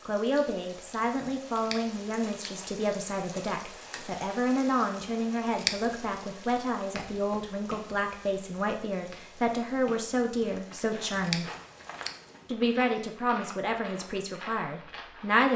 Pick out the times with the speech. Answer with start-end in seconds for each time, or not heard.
0.1-11.4, 12.4-15.5.